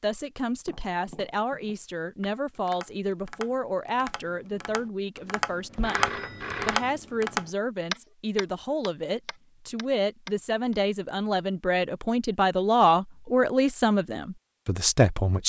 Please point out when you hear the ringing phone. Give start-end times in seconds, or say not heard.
5.8-6.9.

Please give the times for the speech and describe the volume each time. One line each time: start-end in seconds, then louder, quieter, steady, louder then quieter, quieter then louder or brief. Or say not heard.
0.0-15.4 louder.